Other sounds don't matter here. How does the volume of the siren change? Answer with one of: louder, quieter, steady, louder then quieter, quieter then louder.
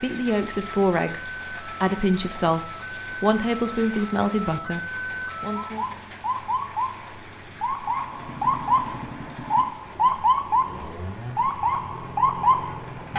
louder.